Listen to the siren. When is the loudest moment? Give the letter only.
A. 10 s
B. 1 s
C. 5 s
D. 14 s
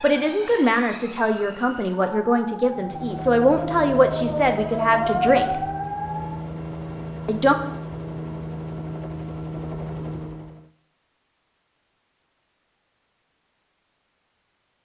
C.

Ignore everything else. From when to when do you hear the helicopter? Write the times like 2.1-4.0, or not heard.
2.6-10.7.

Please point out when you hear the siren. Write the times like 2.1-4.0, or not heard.
0.0-6.4.